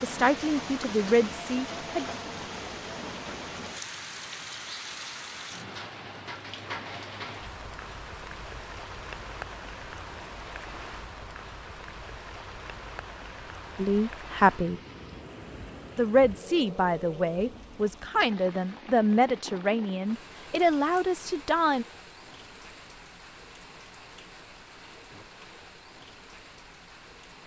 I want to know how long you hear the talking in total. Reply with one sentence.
You can hear the talking for 9 seconds altogether.